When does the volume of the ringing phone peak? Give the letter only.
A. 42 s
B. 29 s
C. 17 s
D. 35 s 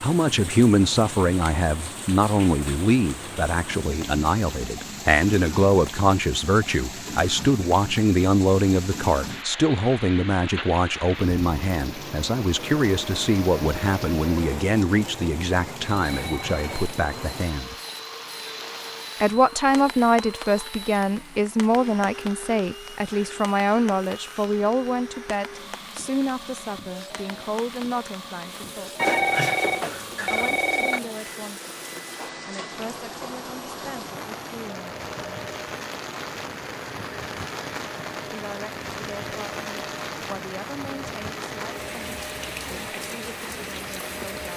B.